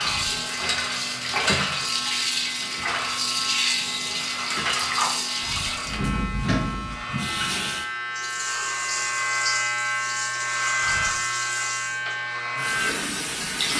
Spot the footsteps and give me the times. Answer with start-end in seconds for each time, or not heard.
not heard.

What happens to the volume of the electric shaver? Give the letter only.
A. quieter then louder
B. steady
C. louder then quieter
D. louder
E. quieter
D.